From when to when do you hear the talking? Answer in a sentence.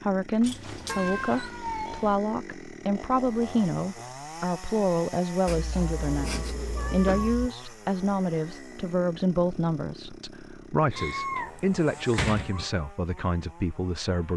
The talking can be heard from 0.0 to 14.3 s.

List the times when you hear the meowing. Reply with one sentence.
The meowing can be heard from 0.8 to 2.1 s, from 5.5 to 7.5 s and from 10.9 to 12.7 s.